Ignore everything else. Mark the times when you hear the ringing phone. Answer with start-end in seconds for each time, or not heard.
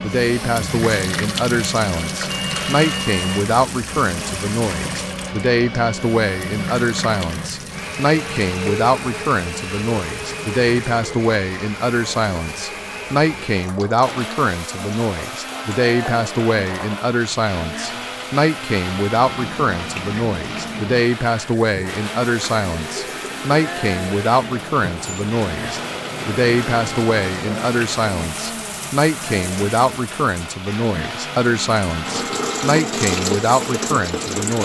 2.3-3.5.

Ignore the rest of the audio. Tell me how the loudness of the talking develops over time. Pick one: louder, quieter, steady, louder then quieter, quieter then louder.
steady.